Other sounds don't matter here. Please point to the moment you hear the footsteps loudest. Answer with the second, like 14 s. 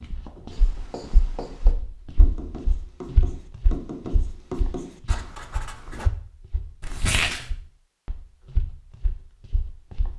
3 s.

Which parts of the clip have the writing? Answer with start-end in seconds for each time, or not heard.
0.5-6.1.